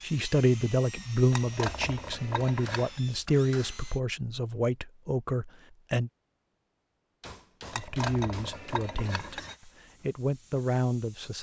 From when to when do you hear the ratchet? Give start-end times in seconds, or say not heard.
1.3-3.0, 7.7-9.6.